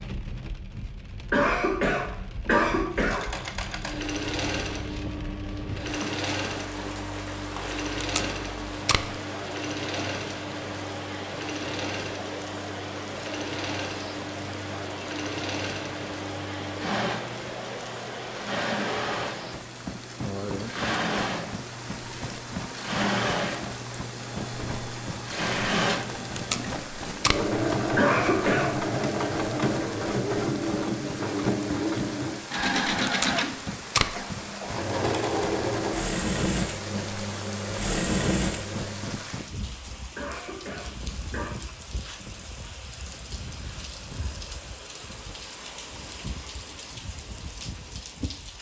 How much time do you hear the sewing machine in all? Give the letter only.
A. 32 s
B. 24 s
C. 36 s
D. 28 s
C.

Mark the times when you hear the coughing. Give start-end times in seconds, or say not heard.
1.3-3.3, 27.9-28.8, 40.1-41.6.